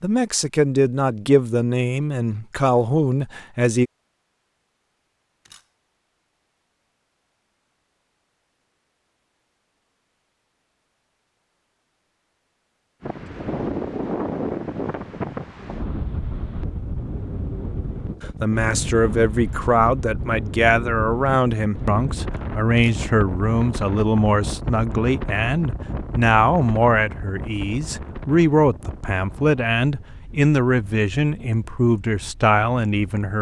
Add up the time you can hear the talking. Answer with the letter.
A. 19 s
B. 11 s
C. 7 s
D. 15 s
A.